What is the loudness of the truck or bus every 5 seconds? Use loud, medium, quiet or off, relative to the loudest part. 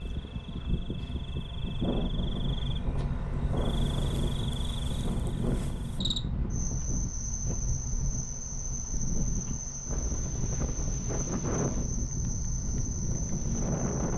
loud, medium, medium.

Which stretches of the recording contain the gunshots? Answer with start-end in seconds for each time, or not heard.
not heard.